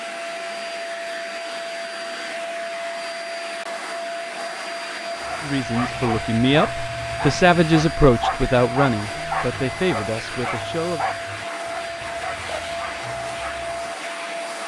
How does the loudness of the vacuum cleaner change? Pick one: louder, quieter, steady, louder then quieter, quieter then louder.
steady.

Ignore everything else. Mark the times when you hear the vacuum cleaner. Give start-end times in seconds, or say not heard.
0.0-14.6.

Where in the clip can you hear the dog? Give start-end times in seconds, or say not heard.
5.2-13.9.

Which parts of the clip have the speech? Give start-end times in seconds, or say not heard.
5.4-11.1.